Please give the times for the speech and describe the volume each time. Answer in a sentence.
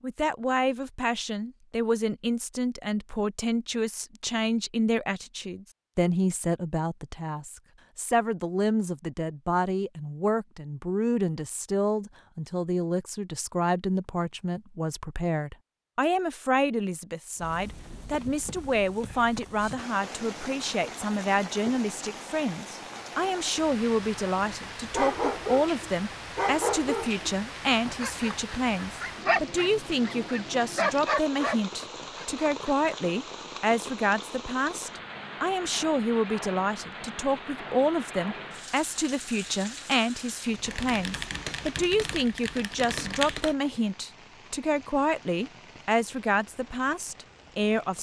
You can hear the speech from 0.0 to 47.9 s, at a steady volume.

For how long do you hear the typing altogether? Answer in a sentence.
The typing can be heard for 3 seconds in total.